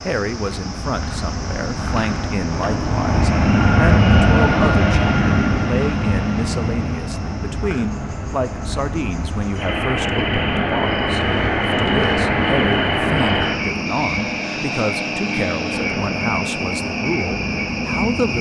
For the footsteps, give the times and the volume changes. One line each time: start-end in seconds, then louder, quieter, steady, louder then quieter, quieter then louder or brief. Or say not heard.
not heard.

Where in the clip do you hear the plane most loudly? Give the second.
4 s.